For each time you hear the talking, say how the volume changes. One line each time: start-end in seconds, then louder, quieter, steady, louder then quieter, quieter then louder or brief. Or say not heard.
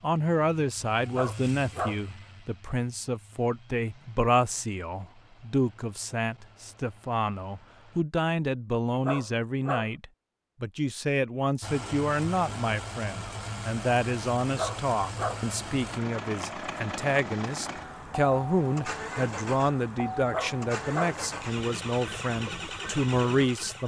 0.0-23.8 steady.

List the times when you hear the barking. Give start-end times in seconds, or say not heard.
1.1-2.0, 8.9-9.9, 14.4-15.4, 20.2-21.1.